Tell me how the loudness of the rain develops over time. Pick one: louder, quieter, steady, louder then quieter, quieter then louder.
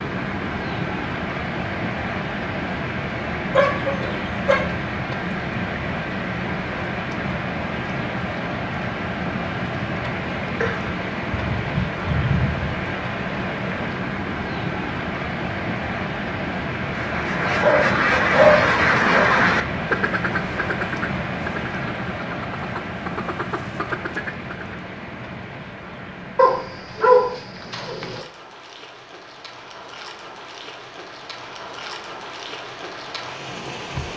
quieter.